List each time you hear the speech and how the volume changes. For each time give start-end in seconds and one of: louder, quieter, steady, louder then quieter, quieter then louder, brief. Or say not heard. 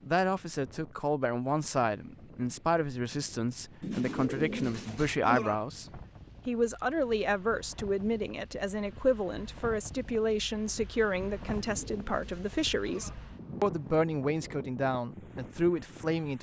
0.1-16.3 steady.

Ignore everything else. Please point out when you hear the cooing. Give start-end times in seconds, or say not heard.
3.8-5.5, 11.4-13.2.